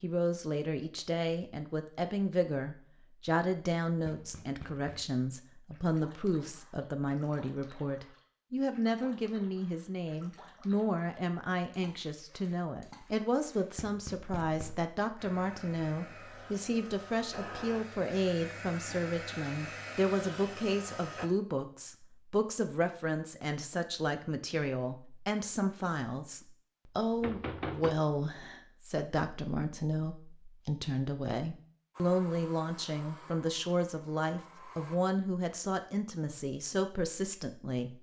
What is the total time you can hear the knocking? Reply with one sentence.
The knocking can be heard for 3 seconds in total.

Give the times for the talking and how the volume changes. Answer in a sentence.
The talking can be heard from 0.0 to 37.9 s, at a steady volume.